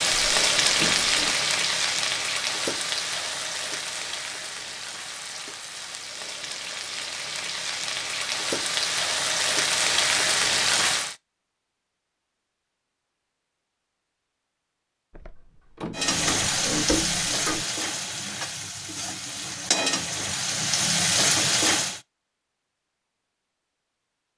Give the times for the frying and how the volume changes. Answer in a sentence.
You can hear the frying from 0.0 to 11.2 s, getting quieter then louder; and from 15.9 to 22.0 s, getting quieter then louder.